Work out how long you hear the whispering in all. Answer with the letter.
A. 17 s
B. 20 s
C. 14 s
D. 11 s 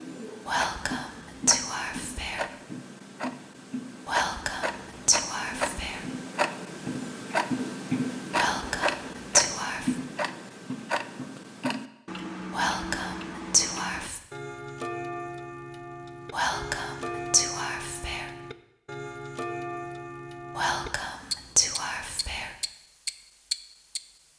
D.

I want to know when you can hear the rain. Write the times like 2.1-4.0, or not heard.
not heard.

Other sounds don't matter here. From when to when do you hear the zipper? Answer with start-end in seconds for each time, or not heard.
not heard.